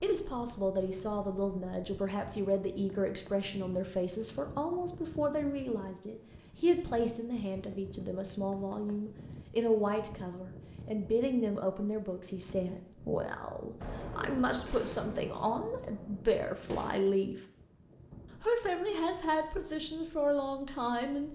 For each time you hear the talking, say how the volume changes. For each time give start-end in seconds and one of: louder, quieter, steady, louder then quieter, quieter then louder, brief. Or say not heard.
0.0-17.4 steady
18.4-21.2 brief.